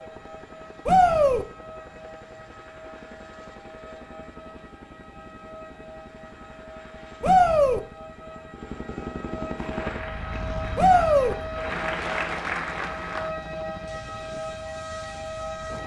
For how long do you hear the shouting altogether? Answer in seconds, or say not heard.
2 s.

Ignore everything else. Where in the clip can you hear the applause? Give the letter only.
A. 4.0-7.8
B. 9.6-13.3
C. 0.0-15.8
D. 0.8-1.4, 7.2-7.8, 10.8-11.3
B.